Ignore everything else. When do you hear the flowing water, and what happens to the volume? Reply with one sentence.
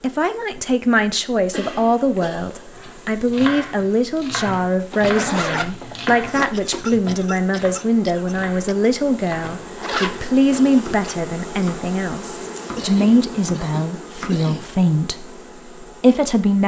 The flowing water can't be heard in this clip.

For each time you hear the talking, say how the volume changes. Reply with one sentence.
You can hear the talking from 0.0 to 16.6 s, at a steady volume.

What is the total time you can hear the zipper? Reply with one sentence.
The zipper can be heard for 4 seconds in total.